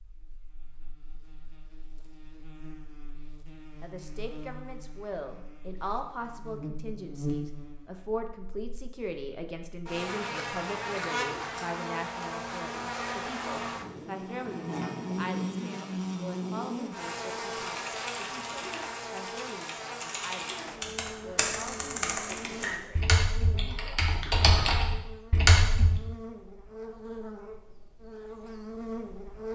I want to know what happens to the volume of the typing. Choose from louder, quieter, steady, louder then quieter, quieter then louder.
louder.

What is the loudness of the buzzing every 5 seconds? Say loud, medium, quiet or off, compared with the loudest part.
quiet, medium, loud, loud, medium, medium.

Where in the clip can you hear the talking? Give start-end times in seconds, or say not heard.
3.8-24.0.